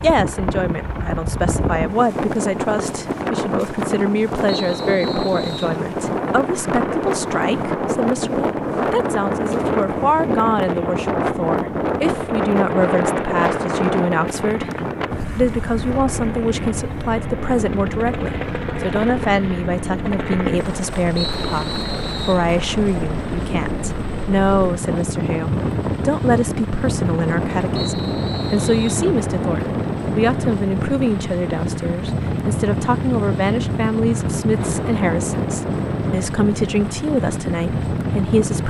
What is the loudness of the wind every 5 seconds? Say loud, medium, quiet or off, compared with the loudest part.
loud, loud, loud, medium, medium, loud, loud, loud.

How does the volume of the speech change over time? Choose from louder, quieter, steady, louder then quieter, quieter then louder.
steady.